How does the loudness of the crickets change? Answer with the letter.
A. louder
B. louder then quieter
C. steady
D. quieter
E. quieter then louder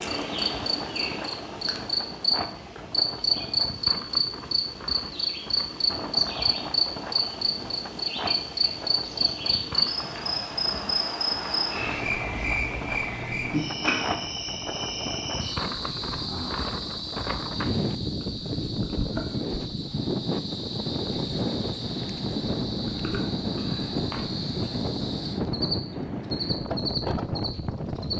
D.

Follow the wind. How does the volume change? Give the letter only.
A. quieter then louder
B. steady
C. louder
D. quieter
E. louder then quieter
C.